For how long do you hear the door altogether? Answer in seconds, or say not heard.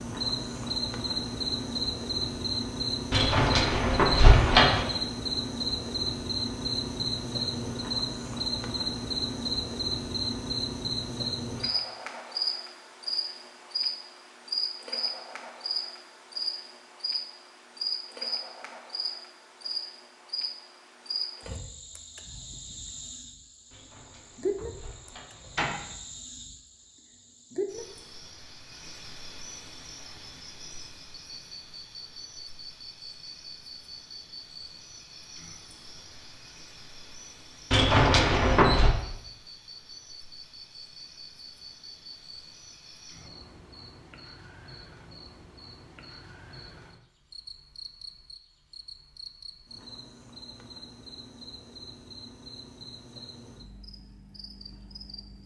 5 s.